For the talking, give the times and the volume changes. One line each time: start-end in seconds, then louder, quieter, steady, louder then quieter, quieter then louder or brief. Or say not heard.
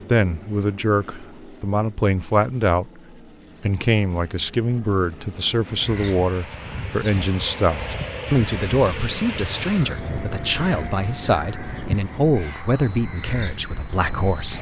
0.1-3.0 brief
3.6-14.5 steady.